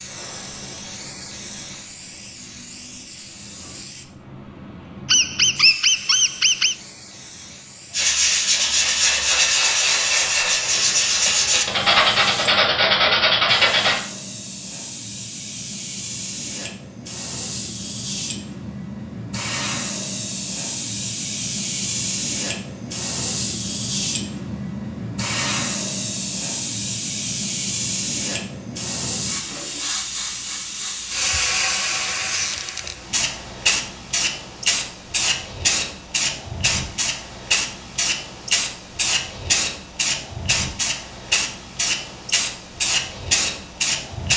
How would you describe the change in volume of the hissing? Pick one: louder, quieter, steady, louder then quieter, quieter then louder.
louder.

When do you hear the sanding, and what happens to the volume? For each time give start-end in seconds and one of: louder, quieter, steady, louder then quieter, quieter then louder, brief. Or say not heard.
7.9-14.0 steady.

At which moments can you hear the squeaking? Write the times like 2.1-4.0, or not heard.
5.0-6.8, 32.2-33.0.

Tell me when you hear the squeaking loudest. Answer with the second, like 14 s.
6 s.